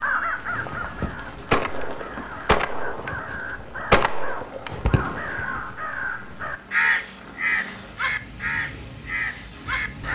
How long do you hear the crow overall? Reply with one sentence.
The crow can be heard for 10 seconds in total.